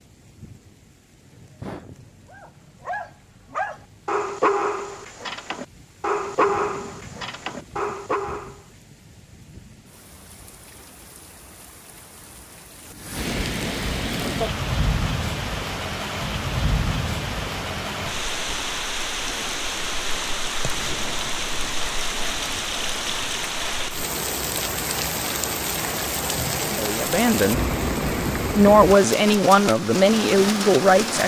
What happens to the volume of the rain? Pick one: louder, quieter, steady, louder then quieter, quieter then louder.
louder.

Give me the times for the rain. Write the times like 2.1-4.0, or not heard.
0.0-31.2.